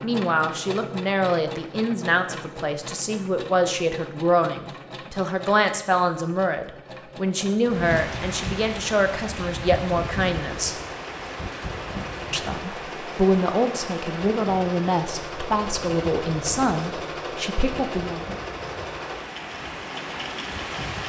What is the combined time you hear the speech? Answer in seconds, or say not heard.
17 s.